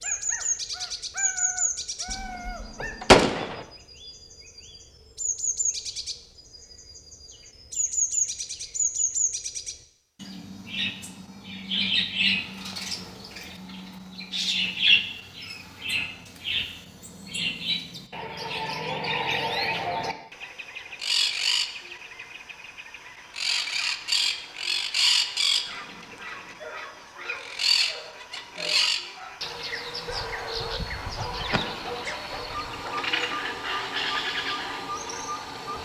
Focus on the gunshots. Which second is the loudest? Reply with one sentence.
The loudest moment of the gunshots is at 3 seconds.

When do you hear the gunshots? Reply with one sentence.
You can hear the gunshots from 2.0 to 3.6 s and from 30.1 to 32.6 s.